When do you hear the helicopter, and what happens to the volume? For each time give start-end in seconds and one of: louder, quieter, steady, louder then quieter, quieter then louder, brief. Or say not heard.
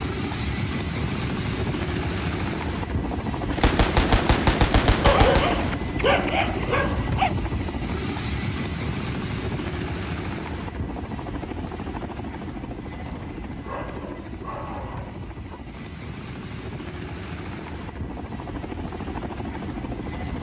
0.0-20.3 quieter.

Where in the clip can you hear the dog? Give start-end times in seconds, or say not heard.
5.0-7.3, 13.1-15.5.